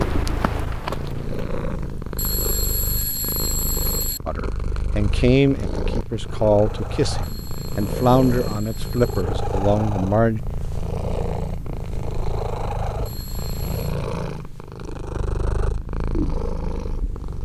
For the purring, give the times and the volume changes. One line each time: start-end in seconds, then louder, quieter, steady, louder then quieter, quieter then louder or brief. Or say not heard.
0.0-17.4 steady.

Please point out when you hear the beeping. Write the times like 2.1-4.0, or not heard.
2.1-4.2, 7.2-9.2, 13.1-13.9.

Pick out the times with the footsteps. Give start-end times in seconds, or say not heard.
0.0-1.5.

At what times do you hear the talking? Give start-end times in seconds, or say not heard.
4.2-10.4.